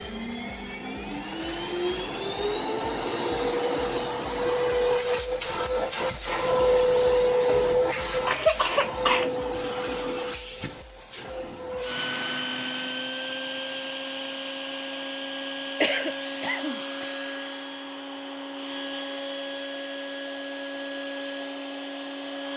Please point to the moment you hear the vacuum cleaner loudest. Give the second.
7 s.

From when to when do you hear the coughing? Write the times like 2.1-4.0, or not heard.
7.4-9.3, 15.8-17.1.